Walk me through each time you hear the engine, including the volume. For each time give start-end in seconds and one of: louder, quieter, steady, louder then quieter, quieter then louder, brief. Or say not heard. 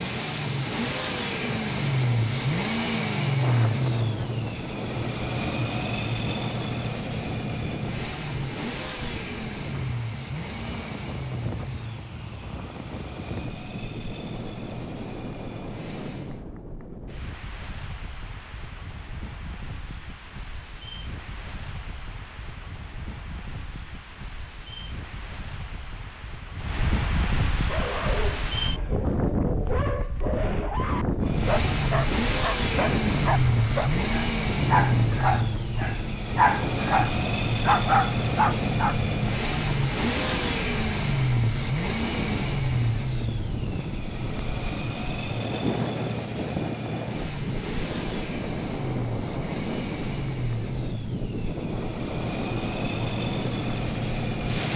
0.0-16.4 quieter
31.2-54.7 quieter.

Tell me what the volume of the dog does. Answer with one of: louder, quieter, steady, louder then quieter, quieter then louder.
louder.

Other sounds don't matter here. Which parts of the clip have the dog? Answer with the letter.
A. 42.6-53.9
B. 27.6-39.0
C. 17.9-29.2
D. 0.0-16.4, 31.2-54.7
B.